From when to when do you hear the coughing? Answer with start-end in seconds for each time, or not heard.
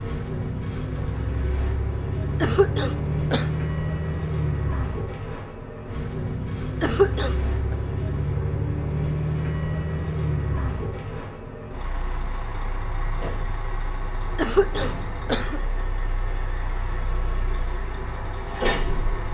2.4-3.5, 6.8-7.8, 14.3-15.6.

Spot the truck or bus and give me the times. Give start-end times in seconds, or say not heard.
0.0-19.2.